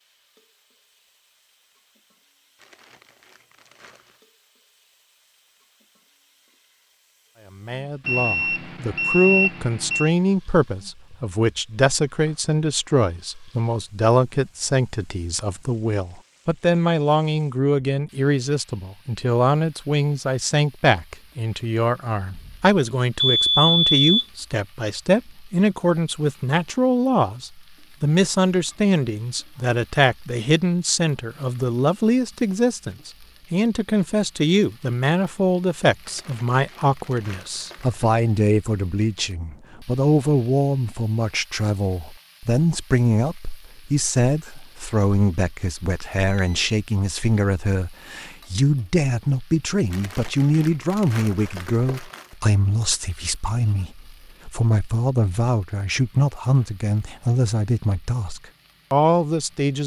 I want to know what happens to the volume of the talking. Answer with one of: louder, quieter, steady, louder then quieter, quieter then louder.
steady.